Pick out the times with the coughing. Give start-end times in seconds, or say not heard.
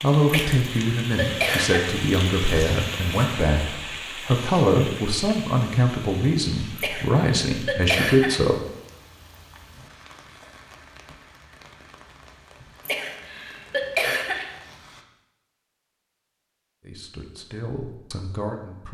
0.2-1.9, 6.8-8.4, 12.8-14.6.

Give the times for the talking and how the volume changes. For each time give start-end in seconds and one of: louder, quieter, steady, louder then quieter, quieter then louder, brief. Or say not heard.
0.0-8.6 steady
16.8-18.8 brief.